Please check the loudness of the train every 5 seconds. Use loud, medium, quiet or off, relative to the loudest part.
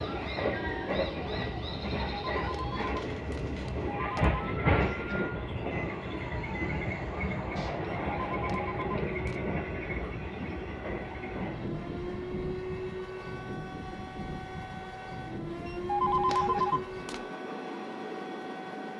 loud, loud, medium, medium.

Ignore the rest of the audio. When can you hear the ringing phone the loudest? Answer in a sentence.
The volume of the ringing phone peaks at 16 seconds.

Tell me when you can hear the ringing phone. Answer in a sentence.
The ringing phone can be heard from 2.1 to 4.5 s, from 8.1 to 9.5 s and from 15.7 to 17.2 s.